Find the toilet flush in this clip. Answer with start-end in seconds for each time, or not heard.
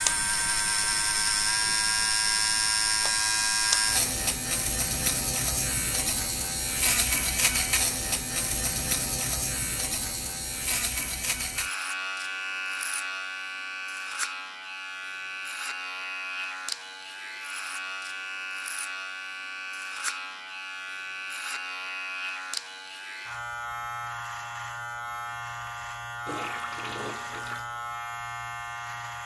26.2-27.7.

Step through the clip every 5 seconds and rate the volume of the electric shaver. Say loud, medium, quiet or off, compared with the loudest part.
loud, loud, medium, medium, medium, medium.